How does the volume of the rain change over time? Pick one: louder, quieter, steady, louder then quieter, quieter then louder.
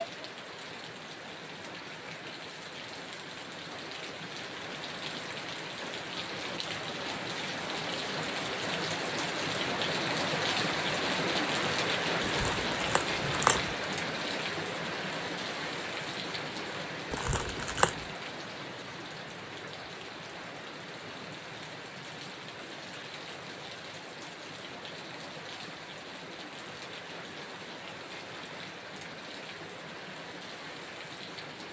louder then quieter.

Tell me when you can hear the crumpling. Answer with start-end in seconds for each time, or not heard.
12.2-13.8, 17.1-18.1.